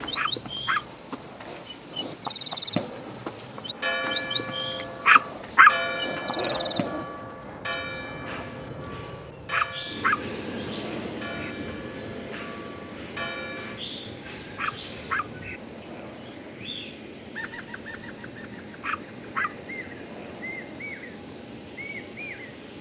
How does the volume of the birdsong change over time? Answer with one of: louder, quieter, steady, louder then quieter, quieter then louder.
quieter.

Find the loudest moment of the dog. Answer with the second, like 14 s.
6 s.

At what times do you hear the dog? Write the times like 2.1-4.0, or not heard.
0.1-1.6, 5.0-7.0, 9.5-11.2, 14.6-16.6, 18.8-20.6.